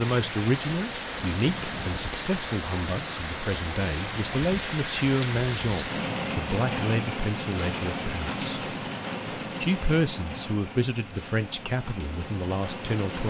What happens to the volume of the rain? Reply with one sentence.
The volume of the rain goes down.